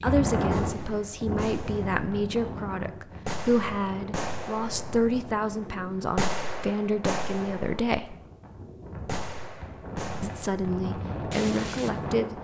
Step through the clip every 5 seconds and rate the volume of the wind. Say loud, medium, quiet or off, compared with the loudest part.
loud, medium, loud.